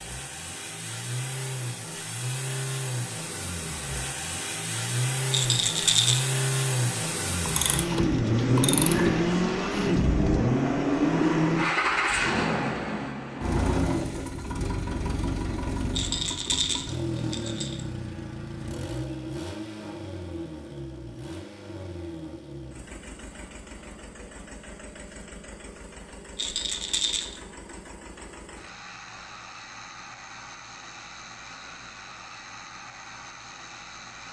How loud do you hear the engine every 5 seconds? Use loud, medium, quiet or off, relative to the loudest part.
medium, loud, loud, medium, quiet, quiet, quiet.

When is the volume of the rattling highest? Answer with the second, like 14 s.
6 s.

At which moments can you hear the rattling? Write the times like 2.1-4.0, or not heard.
5.3-6.3, 15.9-17.8, 26.4-27.4.